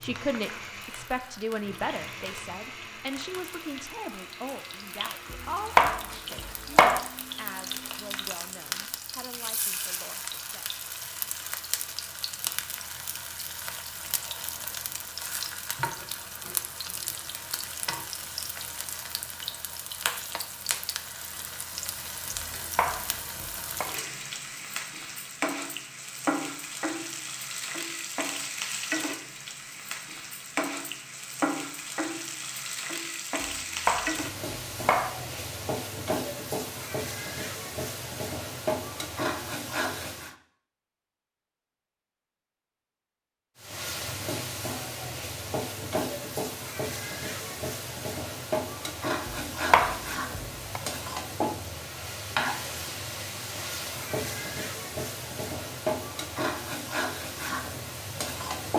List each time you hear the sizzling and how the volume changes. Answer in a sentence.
You can hear the sizzling from 0.0 to 40.4 s, getting louder; and from 43.5 to 58.7 s, at a steady volume.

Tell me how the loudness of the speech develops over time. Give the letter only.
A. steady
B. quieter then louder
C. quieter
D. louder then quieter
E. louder
C.